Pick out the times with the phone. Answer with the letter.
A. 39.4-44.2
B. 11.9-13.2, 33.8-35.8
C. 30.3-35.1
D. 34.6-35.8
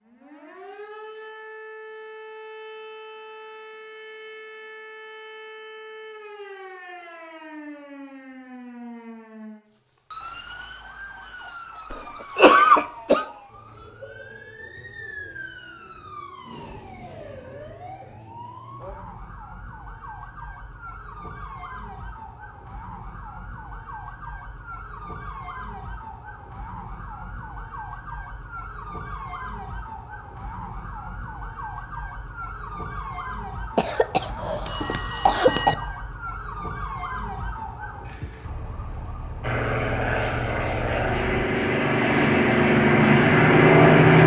D.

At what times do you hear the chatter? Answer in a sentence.
You can't hear the chatter here.